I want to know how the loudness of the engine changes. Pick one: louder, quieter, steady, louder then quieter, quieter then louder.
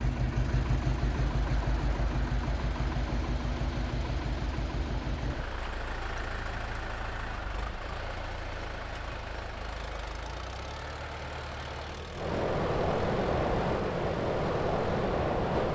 quieter.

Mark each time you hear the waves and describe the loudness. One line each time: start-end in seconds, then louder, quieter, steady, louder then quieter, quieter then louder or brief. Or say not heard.
0.0-15.7 louder.